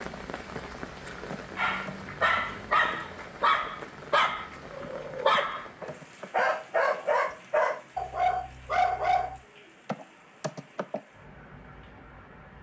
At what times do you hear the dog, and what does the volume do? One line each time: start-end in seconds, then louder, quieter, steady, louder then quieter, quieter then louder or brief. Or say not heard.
1.6-9.4 steady.